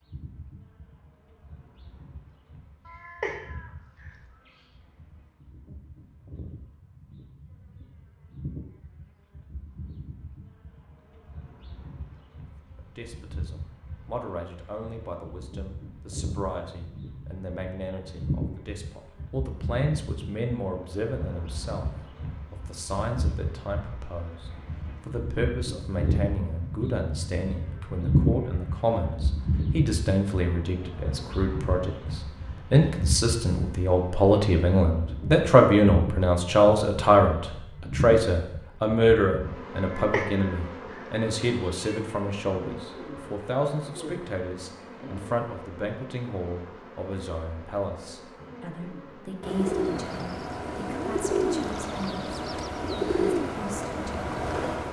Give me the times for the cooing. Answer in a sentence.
You can hear the cooing from 49.4 to 54.8 s.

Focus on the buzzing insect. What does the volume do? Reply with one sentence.
The loudness of the buzzing insect goes up, then down.